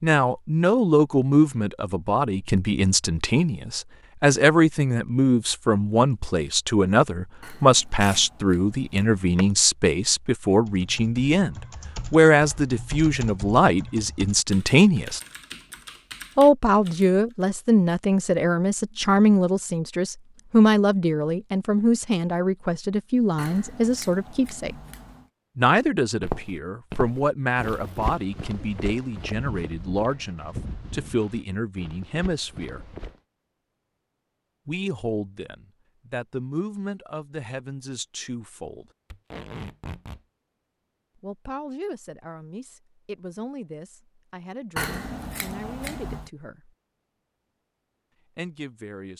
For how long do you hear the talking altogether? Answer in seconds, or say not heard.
41 s.